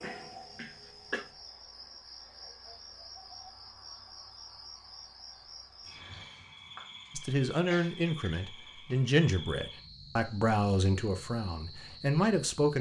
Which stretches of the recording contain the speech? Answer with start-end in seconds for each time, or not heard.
7.2-12.7.